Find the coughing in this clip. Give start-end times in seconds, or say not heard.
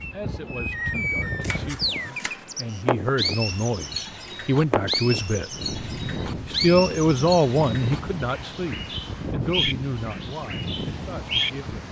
not heard.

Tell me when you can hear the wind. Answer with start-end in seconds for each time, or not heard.
0.0-11.8.